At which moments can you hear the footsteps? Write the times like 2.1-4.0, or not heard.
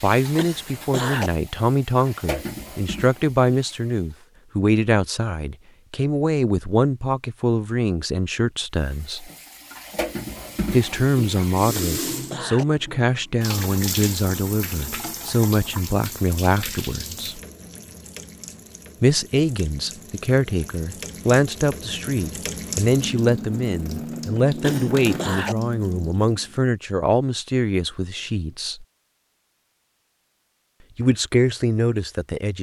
not heard.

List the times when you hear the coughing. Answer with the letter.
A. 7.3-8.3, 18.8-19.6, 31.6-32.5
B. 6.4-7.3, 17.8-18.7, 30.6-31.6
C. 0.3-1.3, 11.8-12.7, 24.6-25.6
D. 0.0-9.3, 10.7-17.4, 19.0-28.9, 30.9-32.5
C.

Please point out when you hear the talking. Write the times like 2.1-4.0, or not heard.
0.0-9.3, 10.7-17.4, 19.0-28.9, 30.9-32.5.